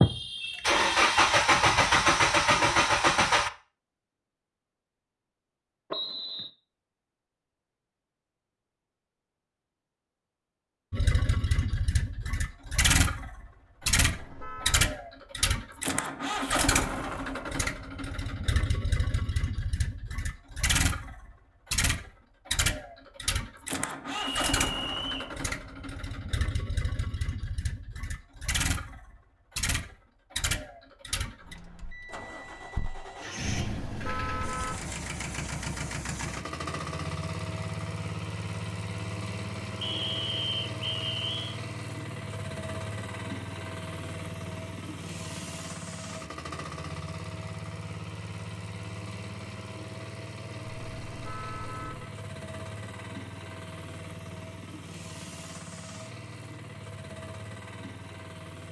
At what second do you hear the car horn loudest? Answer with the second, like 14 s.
34 s.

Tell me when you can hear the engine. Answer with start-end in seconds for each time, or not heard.
0.0-3.5, 10.9-58.6.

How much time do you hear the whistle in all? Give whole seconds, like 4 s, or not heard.
4 s.